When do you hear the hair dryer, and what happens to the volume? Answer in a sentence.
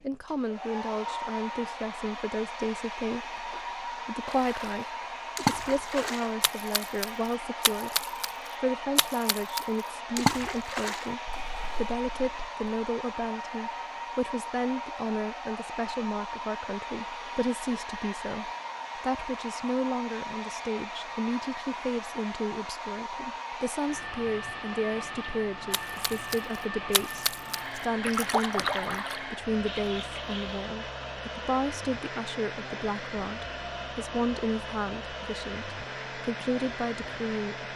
The hair dryer can be heard from 0.0 to 37.7 s, at a steady volume.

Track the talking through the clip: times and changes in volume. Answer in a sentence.
The talking can be heard from 0.0 to 37.6 s, at a steady volume.